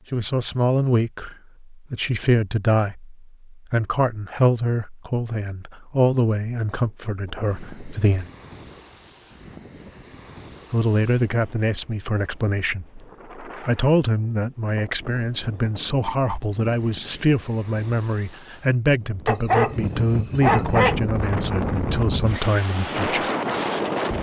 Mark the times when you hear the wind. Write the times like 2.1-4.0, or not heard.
6.8-24.1.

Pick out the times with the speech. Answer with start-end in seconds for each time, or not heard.
0.1-8.3, 10.7-23.3.